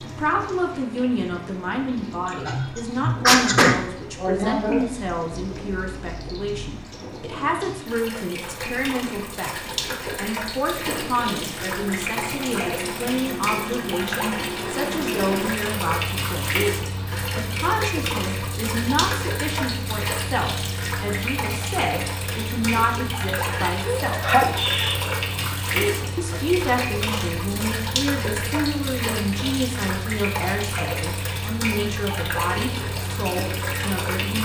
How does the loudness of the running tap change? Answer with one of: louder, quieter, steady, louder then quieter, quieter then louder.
louder.